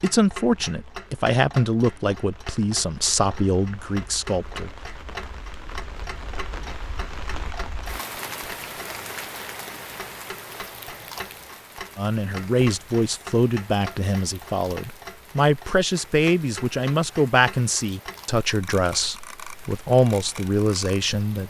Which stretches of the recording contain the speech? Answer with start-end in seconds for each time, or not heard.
0.0-4.8, 11.9-21.4.